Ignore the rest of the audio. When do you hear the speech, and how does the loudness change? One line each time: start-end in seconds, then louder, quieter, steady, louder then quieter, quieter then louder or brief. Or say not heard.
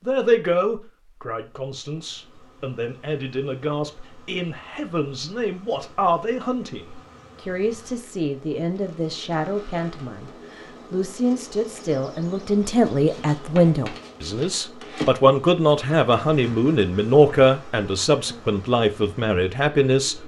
0.0-20.1 louder.